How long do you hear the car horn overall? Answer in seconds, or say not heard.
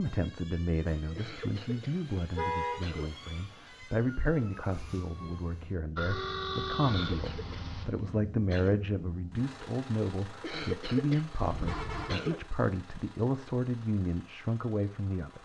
4 s.